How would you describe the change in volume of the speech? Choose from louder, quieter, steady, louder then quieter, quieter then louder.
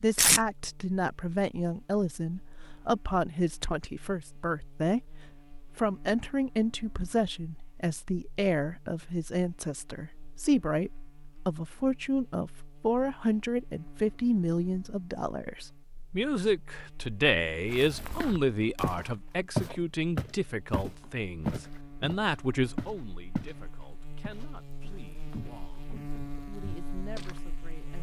quieter.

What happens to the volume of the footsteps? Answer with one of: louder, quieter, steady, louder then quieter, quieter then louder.
louder then quieter.